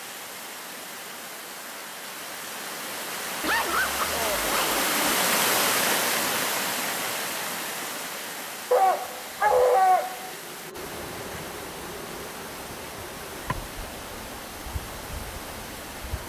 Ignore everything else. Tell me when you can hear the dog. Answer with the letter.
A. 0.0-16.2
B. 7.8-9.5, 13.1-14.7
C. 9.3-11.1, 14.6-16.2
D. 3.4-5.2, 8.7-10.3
D.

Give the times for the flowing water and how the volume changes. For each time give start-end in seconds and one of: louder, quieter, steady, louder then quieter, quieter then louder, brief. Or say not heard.
0.0-16.2 louder then quieter.